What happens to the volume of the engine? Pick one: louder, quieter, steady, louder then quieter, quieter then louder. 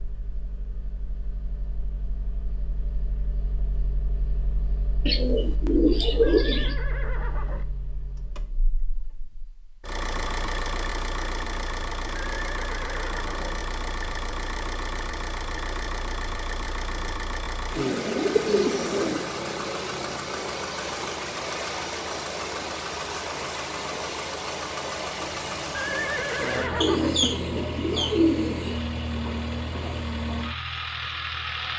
louder.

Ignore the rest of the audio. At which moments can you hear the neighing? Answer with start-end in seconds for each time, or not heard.
6.2-7.7, 12.3-13.6, 25.7-27.2.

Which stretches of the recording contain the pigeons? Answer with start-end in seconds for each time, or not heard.
5.0-6.8, 17.8-19.3, 26.8-28.8.